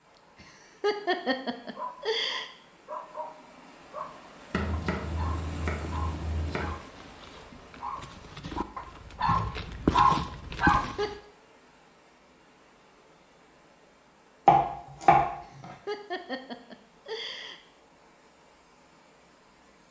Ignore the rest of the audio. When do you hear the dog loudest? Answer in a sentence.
The volume of the dog peaks at 10 seconds.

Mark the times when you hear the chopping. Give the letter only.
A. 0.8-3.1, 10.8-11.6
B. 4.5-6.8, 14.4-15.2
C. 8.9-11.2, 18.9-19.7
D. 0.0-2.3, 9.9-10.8
B.